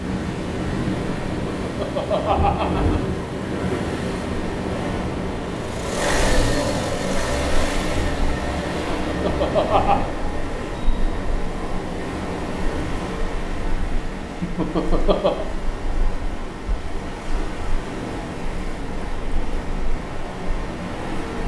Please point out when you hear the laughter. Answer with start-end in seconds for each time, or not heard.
1.2-3.0, 8.6-10.1, 14.4-15.4.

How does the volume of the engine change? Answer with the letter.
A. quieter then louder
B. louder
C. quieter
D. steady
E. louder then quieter
C.